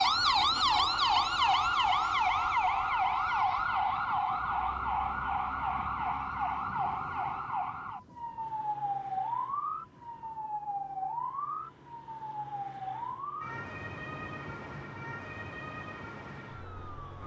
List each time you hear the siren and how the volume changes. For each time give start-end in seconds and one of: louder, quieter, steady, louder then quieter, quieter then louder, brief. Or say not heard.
0.0-17.2 quieter.